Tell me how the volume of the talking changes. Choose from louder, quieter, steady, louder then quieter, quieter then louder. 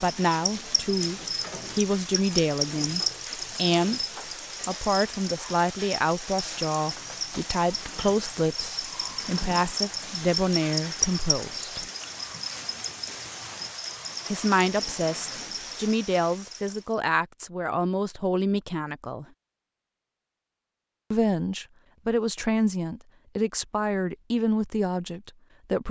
steady.